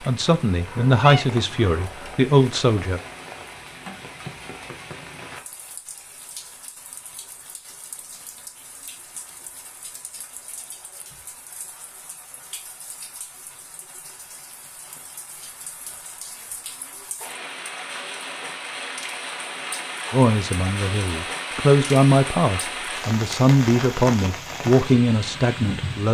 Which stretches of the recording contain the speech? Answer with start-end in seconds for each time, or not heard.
0.0-3.0, 20.1-26.0.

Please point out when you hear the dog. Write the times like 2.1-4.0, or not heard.
not heard.